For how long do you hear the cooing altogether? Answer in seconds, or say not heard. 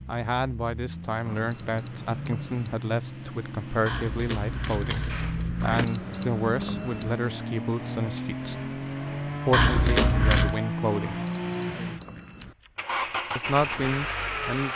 not heard.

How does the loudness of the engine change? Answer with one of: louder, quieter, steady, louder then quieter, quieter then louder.
louder.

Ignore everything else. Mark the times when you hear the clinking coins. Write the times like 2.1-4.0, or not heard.
3.9-5.8, 9.5-10.6.